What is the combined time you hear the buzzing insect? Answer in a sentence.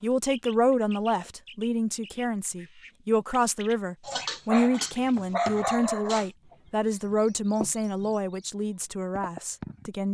The buzzing insect can't be heard in this clip.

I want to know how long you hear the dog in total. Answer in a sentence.
The dog can be heard for 2 seconds in total.